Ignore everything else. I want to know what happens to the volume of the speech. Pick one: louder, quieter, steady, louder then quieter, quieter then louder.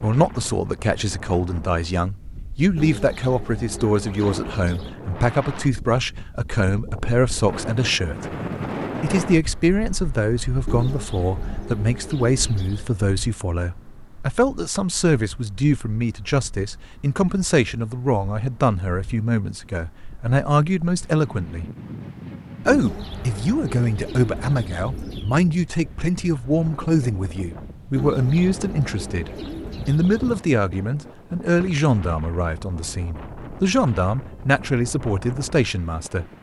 steady.